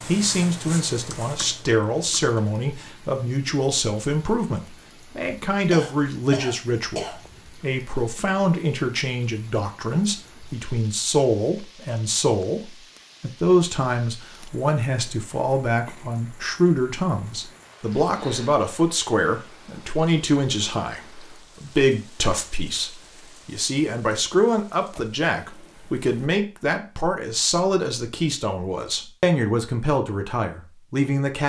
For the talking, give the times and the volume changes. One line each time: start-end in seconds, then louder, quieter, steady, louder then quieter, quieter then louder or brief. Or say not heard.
0.0-31.4 steady.